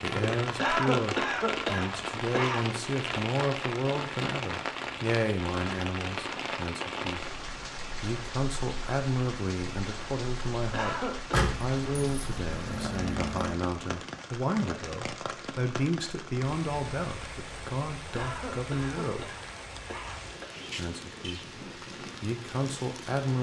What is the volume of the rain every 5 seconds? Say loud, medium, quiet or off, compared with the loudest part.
loud, loud, medium, medium, medium.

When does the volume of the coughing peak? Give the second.
1 s.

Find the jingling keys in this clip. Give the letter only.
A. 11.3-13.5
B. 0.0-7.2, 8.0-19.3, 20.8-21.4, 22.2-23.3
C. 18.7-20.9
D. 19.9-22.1
A.